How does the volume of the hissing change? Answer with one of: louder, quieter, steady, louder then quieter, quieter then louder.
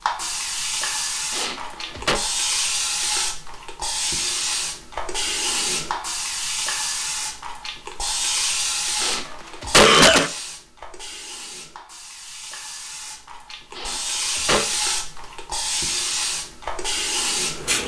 quieter then louder.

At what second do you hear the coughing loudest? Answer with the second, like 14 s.
10 s.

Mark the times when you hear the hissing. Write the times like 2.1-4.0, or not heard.
0.0-17.8.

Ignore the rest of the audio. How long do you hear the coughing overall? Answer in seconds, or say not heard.
3 s.